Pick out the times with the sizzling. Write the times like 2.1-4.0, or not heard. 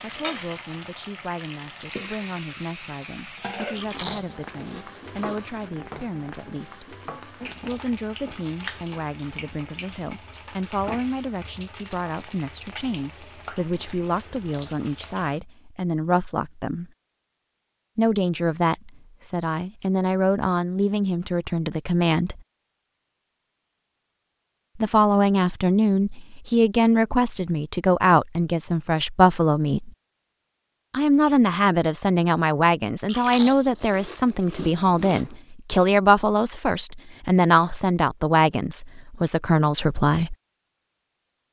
0.0-15.4.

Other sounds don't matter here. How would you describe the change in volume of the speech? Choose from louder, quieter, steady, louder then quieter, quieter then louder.
louder.